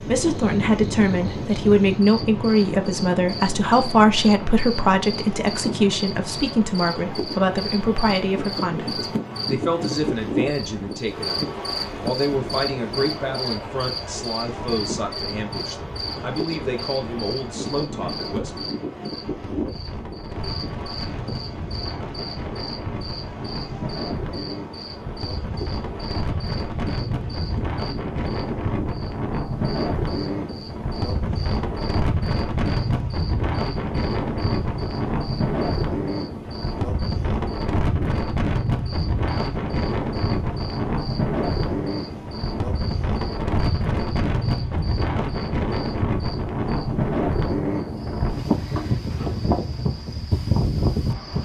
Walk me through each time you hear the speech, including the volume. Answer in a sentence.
The speech can be heard from 0.0 to 18.7 s, getting quieter.